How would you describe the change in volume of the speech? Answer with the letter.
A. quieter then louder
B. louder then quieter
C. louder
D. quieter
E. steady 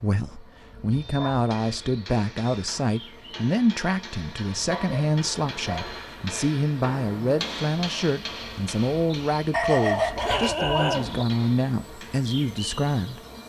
E.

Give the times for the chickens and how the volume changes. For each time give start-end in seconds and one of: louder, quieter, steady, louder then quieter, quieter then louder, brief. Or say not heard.
not heard.